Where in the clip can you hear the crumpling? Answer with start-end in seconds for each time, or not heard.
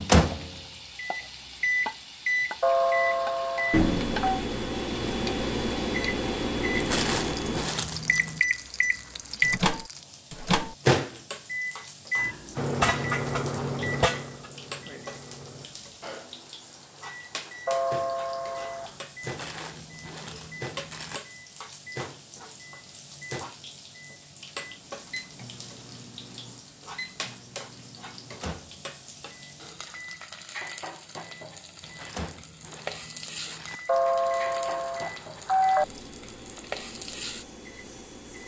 6.7-8.4, 19.2-21.2, 31.8-33.8.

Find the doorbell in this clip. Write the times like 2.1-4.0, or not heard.
2.6-4.4, 17.6-18.9, 33.9-35.9.